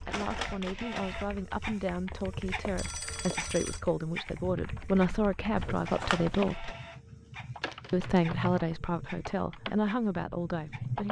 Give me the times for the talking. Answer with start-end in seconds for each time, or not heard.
0.0-6.7, 7.9-11.0.